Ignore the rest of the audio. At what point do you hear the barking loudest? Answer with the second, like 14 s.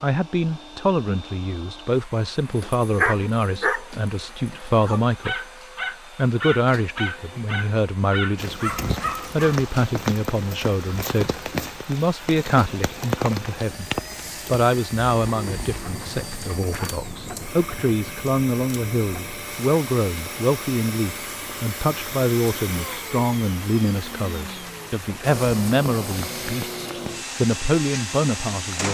3 s.